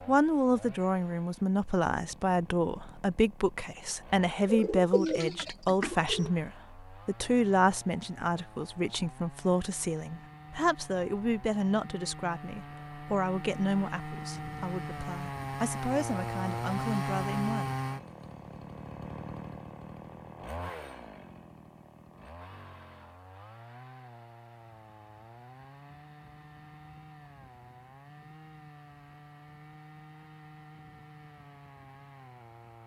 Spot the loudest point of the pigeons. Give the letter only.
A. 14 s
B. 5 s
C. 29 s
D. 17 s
B.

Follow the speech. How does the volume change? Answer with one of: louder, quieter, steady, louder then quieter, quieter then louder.
quieter.